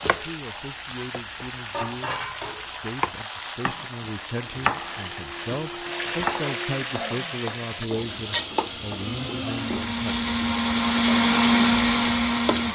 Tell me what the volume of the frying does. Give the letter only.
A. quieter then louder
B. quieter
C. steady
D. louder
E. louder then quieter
C.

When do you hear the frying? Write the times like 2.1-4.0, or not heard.
0.0-12.7.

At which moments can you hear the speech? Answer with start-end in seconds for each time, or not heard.
0.1-10.2.